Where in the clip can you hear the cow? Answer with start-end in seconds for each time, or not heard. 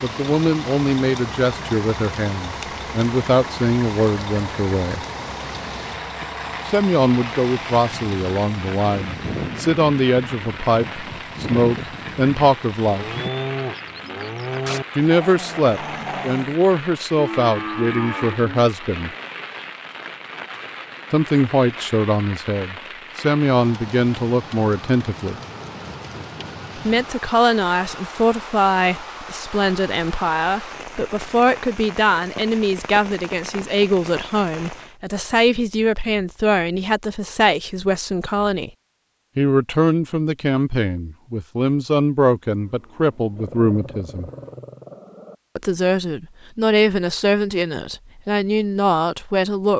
12.8-14.8, 17.1-18.7, 42.6-44.5.